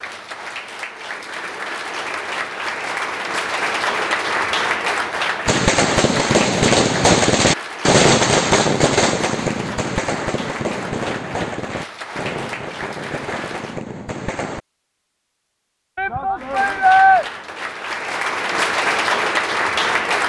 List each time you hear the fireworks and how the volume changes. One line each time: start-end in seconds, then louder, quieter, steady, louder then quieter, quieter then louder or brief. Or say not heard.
5.5-14.6 quieter.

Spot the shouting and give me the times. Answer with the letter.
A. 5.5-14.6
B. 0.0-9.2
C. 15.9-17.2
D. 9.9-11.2
C.